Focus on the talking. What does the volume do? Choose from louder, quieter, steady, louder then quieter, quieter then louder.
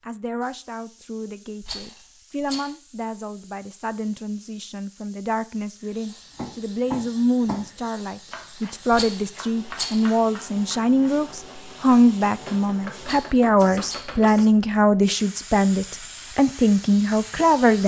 louder.